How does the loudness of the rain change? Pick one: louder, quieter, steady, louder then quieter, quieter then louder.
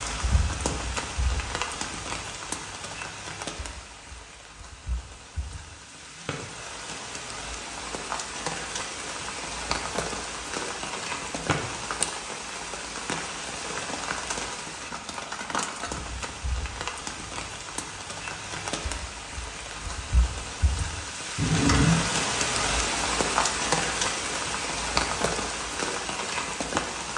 louder.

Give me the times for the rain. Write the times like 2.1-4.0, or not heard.
0.0-27.1.